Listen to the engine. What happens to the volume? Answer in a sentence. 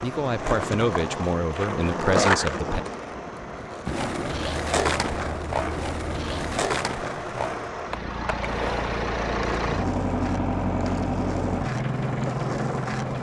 The loudness of the engine goes up.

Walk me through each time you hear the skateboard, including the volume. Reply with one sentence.
The skateboard can be heard from 0.0 to 13.1 s, getting quieter.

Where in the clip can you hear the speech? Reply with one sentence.
You can hear the speech from 0.0 to 2.8 s.